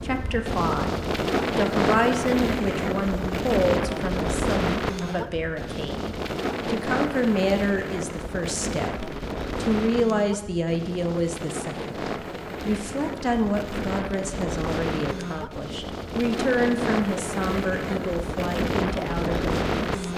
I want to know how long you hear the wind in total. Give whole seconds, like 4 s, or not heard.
20 s.